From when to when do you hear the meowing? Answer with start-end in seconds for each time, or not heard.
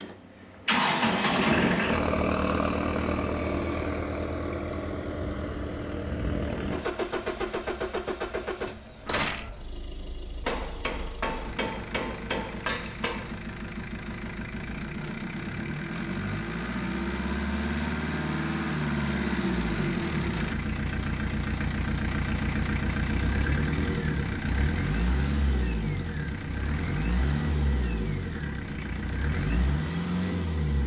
9.1-9.5.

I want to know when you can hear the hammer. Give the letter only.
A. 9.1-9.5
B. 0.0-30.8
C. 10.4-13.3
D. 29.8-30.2
C.